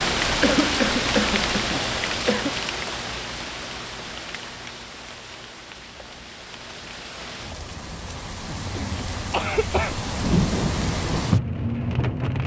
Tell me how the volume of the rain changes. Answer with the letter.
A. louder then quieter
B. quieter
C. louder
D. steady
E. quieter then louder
E.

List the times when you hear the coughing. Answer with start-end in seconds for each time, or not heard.
0.4-2.5, 8.8-9.9.